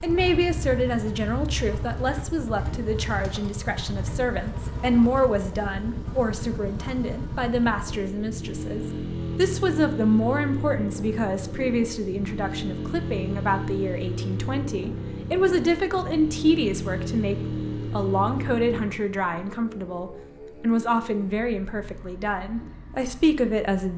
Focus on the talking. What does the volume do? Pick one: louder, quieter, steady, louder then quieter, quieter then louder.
steady.